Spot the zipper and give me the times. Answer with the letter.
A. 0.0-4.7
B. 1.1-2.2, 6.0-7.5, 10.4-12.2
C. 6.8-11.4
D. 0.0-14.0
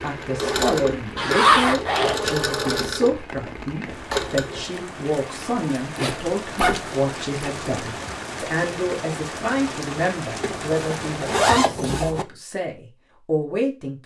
B.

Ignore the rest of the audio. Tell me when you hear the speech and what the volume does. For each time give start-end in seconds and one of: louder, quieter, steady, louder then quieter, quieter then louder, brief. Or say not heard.
0.0-14.0 steady.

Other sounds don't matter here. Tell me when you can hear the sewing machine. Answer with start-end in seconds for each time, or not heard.
0.0-4.7.